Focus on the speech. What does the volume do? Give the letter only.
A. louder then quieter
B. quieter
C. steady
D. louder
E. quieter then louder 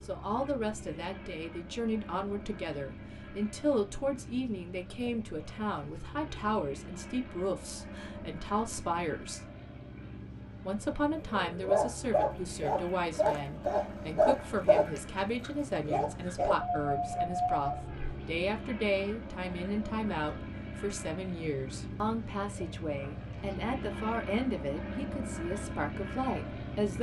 C.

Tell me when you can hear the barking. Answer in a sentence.
The barking can be heard from 11.2 to 17.9 s.